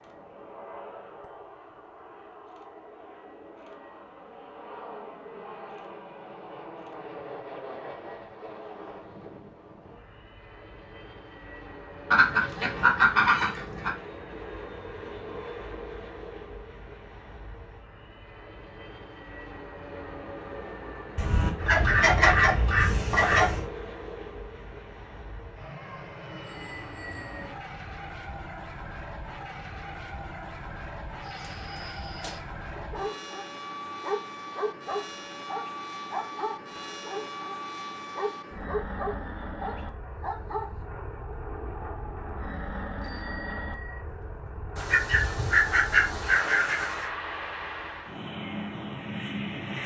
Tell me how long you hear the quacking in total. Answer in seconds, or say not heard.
7 s.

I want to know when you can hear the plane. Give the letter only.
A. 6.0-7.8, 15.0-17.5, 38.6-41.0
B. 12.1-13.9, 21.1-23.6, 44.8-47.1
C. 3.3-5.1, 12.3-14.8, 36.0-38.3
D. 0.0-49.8
D.